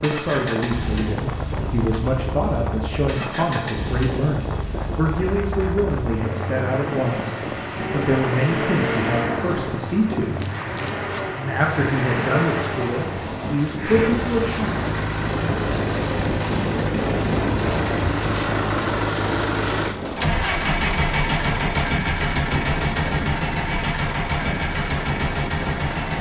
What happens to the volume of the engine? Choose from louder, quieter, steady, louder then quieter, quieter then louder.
louder.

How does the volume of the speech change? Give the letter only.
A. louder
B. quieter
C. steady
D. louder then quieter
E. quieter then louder
C.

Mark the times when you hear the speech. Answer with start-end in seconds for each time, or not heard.
0.0-10.4, 11.3-14.8.